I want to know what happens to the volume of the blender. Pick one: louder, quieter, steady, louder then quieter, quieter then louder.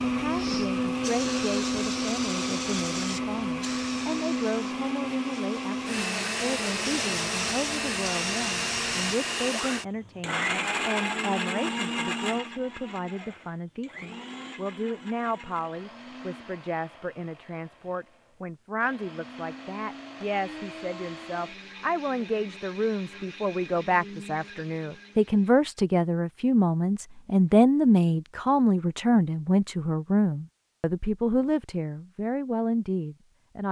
quieter.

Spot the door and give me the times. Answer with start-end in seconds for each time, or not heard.
not heard.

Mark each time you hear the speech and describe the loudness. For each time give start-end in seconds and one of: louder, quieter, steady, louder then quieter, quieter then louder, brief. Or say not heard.
0.1-33.6 louder.